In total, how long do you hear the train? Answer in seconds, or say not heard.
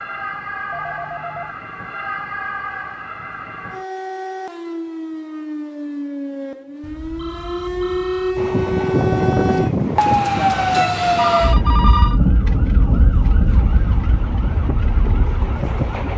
6 s.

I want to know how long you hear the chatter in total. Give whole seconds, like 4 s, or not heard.
not heard.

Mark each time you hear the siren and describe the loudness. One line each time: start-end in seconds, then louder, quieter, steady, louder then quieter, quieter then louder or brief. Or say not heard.
0.0-16.1 louder then quieter.